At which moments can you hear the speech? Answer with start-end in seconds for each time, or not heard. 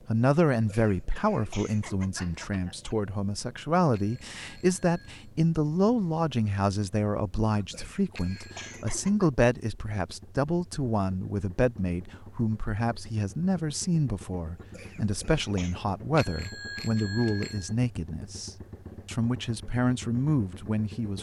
0.1-21.1.